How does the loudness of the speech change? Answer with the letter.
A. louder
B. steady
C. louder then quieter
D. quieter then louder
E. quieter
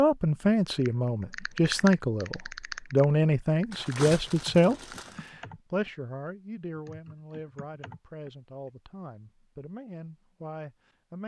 E.